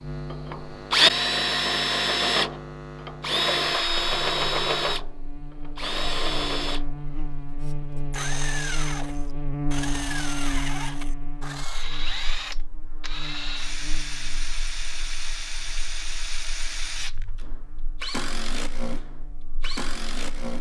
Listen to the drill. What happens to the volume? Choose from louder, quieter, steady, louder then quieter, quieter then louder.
quieter.